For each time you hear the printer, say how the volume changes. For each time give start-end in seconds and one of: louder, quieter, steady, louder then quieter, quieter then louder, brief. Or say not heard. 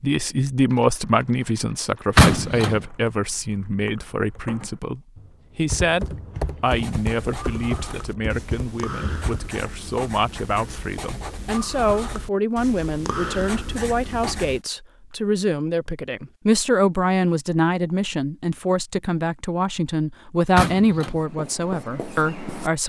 not heard.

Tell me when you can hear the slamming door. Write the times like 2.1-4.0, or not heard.
2.1-2.8, 20.6-21.2.